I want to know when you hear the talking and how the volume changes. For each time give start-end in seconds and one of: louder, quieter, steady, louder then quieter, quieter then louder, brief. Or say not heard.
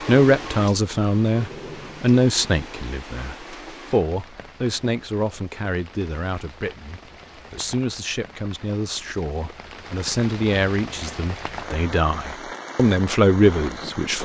0.1-14.1 quieter then louder.